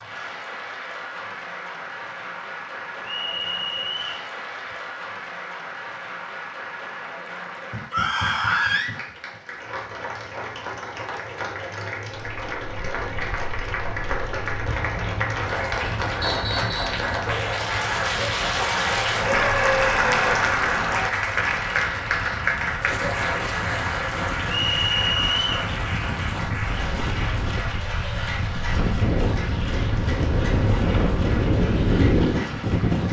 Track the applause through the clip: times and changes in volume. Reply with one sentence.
You can hear the applause from 0.0 to 33.0 s, getting louder then quieter.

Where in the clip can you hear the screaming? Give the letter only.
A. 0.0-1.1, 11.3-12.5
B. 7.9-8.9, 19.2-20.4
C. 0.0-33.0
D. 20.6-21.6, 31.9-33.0
B.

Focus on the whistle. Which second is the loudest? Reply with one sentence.
The loudest moment of the whistle is at 25 seconds.